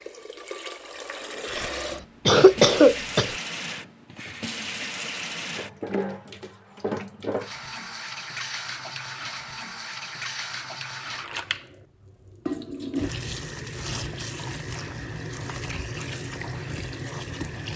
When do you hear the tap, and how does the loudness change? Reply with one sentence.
The tap can be heard from 0.0 to 17.7 s, at a steady volume.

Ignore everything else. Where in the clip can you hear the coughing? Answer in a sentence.
You can hear the coughing from 1.5 to 3.4 s.